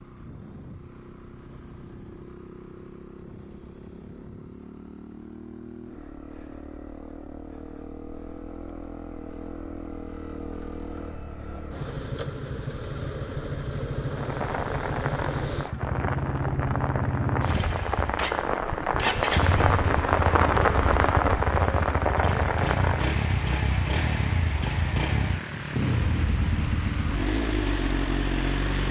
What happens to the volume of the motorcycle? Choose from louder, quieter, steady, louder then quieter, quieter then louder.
louder.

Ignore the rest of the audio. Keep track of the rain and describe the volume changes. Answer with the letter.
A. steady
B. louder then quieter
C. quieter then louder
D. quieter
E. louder
B.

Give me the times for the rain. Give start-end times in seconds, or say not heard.
14.1-28.6.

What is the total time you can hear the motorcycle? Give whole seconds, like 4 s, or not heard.
29 s.